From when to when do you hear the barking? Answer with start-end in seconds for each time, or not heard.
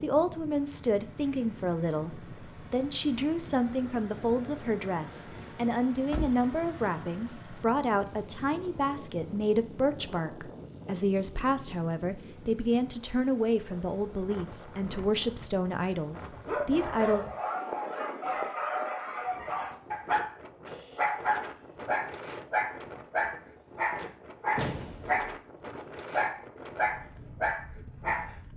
16.4-25.3, 26.1-28.4.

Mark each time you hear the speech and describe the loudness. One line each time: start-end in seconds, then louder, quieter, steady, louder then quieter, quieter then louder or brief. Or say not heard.
0.0-17.2 steady.